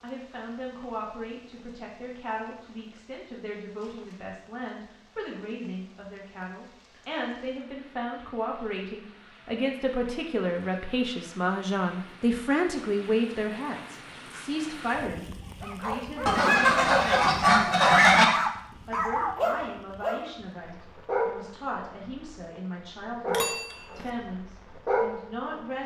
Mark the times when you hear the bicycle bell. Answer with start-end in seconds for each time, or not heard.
23.2-24.1.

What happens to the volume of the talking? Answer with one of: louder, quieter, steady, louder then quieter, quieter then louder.
louder then quieter.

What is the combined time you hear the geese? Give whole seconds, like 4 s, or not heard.
2 s.